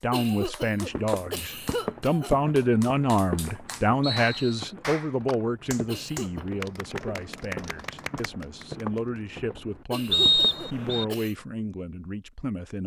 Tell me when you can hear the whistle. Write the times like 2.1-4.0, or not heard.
4.0-4.7, 10.1-11.1.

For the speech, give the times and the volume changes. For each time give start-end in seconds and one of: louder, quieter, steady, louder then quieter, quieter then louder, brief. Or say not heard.
0.0-12.8 quieter.